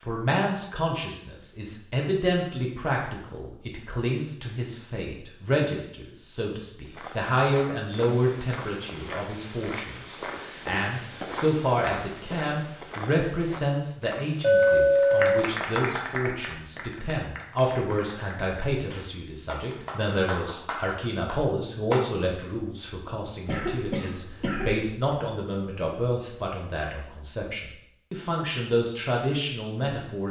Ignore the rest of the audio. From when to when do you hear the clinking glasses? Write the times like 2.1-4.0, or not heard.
14.4-15.4.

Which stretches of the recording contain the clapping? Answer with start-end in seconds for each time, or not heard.
14.9-22.1.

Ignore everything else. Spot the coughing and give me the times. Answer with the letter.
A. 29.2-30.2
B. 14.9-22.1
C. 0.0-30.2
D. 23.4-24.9
D.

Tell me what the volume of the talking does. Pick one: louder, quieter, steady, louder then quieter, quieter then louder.
steady.